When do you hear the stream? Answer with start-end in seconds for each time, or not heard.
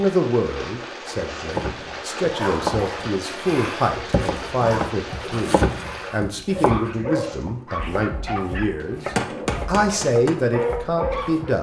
0.0-6.1.